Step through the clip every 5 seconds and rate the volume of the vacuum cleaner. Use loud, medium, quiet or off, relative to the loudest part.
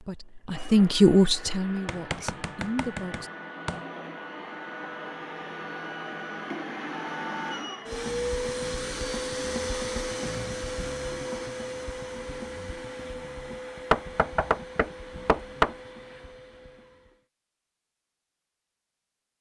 medium, loud, loud, quiet.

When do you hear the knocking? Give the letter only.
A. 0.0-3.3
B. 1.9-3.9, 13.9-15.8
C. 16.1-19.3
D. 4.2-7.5
B.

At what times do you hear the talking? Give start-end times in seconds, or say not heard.
0.0-3.3.